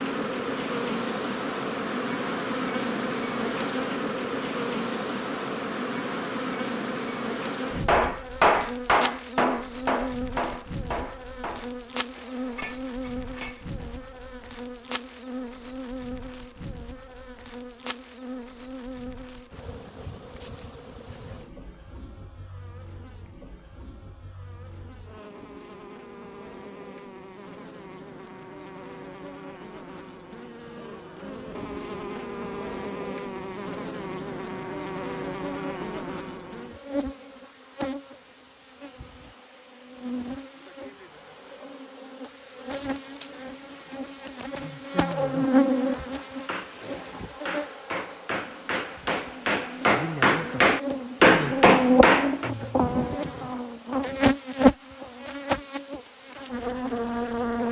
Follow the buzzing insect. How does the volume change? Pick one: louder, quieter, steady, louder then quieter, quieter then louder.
quieter then louder.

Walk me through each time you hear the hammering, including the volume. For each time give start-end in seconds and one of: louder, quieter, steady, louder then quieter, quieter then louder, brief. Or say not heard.
7.8-14.0 quieter
46.2-52.5 louder.